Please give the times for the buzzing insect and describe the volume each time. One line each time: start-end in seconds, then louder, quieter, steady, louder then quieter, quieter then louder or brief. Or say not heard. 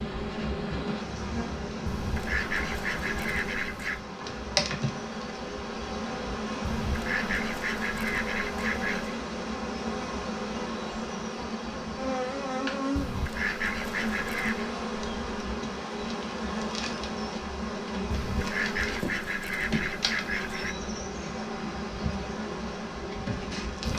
0.0-23.9 steady.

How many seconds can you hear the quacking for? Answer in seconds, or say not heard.
9 s.